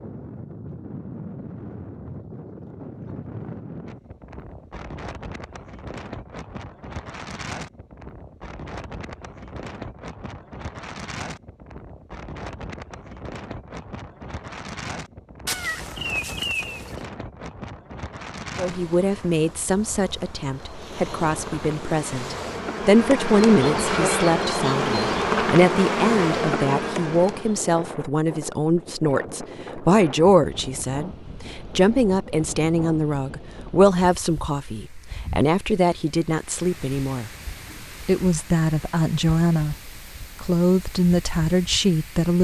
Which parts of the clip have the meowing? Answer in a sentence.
The meowing can be heard from 15.4 to 17.0 s.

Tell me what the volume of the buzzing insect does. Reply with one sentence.
The loudness of the buzzing insect goes up.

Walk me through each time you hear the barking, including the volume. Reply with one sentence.
You can't hear the barking here.